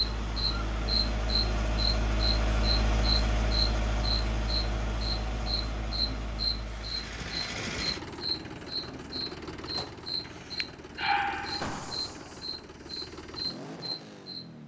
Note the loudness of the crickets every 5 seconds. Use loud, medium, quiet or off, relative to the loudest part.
loud, loud, medium.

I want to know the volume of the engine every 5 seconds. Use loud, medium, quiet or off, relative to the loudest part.
loud, medium, medium.